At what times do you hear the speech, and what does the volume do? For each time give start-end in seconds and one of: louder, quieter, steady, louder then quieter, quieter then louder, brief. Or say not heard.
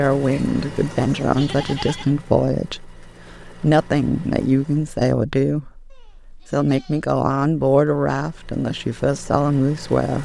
0.0-10.2 steady.